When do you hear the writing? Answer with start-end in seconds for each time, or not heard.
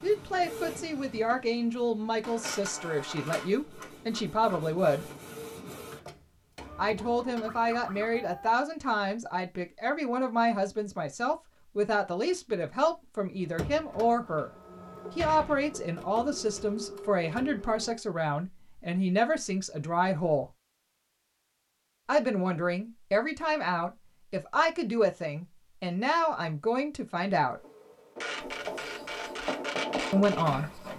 28.4-30.9.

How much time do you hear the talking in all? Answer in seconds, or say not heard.
24 s.